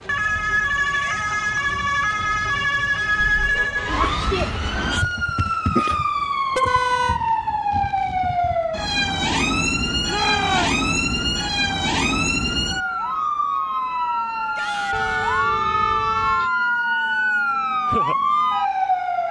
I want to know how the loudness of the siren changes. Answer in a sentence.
The volume of the siren stays about the same.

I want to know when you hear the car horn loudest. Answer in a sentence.
The loudest moment of the car horn is at 7 seconds.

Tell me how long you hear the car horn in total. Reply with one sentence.
The car horn can be heard for 3 seconds in total.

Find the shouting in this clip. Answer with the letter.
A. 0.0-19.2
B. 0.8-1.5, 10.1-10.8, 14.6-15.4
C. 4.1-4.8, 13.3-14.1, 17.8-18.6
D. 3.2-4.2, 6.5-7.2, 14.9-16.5
B.